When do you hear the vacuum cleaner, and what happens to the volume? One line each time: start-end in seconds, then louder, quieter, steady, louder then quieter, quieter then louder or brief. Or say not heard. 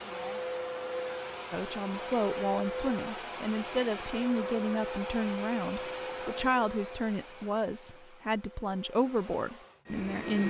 0.0-10.4 quieter.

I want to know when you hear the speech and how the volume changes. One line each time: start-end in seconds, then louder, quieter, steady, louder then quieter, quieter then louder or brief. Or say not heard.
1.5-10.4 steady.